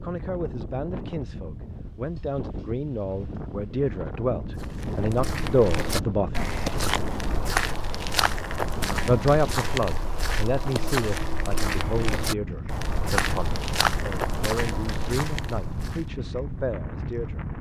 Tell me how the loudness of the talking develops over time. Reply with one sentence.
The volume of the talking goes up, then down.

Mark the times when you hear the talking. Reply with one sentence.
You can hear the talking from 0.0 to 6.5 s and from 9.1 to 17.4 s.